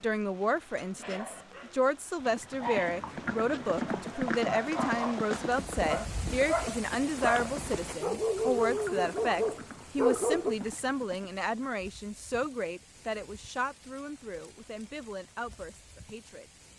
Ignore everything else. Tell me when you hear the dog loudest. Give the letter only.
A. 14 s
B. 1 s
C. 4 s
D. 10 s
D.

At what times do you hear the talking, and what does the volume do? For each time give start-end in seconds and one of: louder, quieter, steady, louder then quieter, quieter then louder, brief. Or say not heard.
0.0-16.4 quieter.